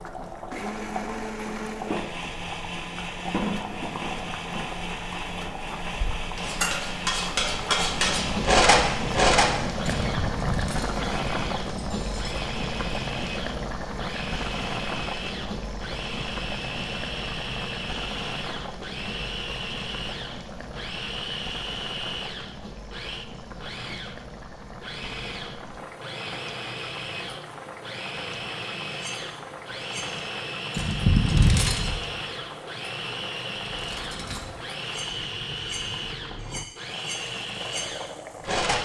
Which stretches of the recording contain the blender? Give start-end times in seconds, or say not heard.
0.0-38.8.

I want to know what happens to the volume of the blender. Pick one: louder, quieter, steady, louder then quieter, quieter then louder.
steady.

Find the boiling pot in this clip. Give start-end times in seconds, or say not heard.
0.0-38.8.